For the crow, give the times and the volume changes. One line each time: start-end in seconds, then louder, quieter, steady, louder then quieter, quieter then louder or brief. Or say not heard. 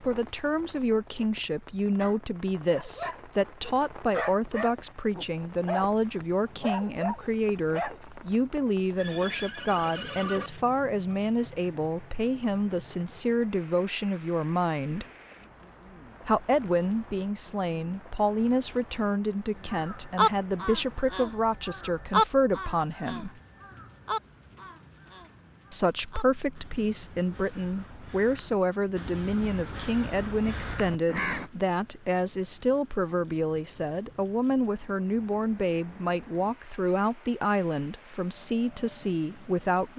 19.7-31.4 quieter then louder.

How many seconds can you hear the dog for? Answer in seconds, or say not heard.
5 s.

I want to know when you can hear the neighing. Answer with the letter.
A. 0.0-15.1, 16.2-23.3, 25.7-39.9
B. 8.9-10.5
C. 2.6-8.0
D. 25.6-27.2
B.